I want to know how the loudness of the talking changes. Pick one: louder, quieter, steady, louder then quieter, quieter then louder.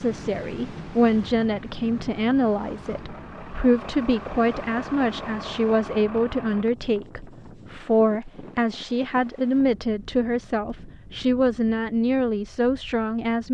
steady.